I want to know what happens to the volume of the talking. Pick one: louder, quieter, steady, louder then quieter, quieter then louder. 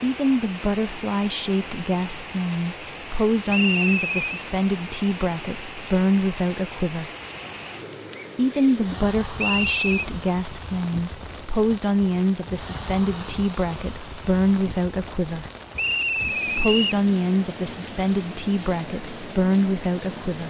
steady.